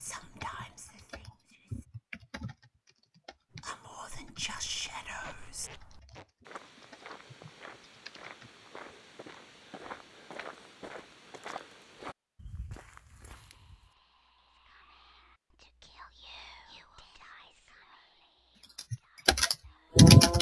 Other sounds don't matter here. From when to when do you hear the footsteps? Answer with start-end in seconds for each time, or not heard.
4.3-13.9.